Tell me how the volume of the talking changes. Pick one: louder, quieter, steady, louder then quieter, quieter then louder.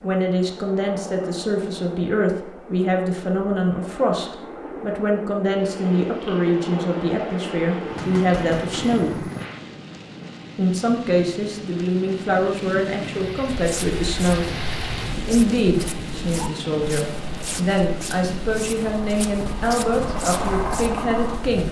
steady.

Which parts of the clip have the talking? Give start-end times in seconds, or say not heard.
0.0-9.2, 10.6-14.5, 15.2-21.6.